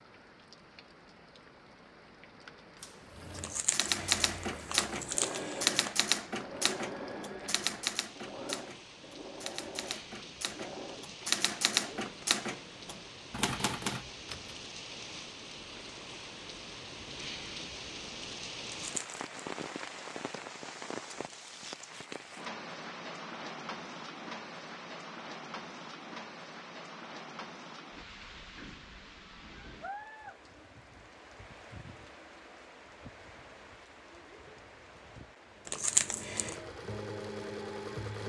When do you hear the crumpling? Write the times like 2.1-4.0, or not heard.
3.4-6.0, 18.6-19.4, 35.6-36.6.